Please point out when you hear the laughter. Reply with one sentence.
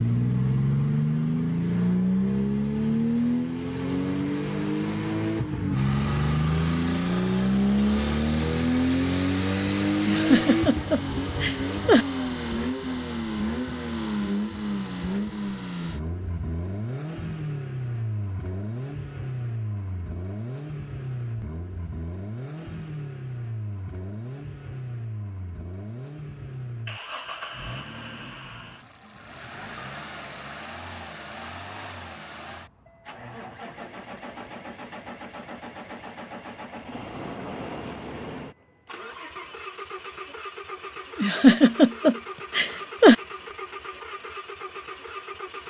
You can hear the laughter from 10.1 to 12.1 s and from 41.1 to 43.1 s.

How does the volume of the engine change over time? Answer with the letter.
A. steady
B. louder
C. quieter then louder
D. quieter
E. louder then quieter
D.